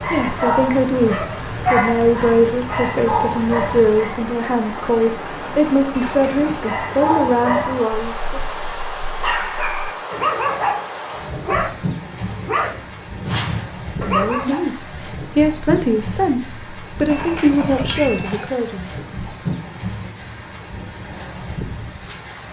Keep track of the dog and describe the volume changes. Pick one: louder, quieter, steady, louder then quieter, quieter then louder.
steady.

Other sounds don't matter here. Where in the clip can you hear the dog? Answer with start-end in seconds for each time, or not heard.
0.0-4.2, 6.5-14.7.